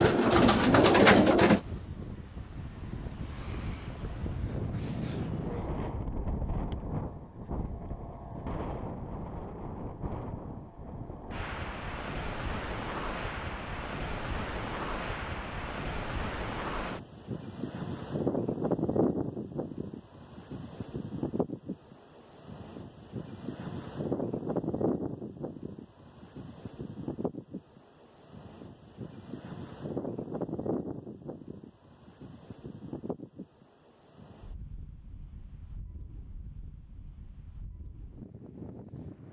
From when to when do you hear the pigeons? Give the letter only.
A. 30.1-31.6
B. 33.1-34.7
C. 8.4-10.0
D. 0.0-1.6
D.